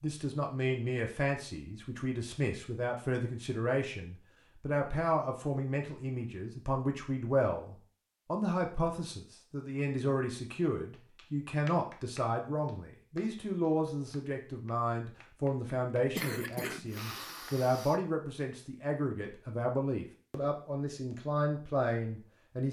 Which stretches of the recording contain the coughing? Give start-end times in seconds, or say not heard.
16.1-18.0.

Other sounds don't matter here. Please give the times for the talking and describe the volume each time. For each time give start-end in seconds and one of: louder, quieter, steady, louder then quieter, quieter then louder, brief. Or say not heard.
0.0-22.6 steady.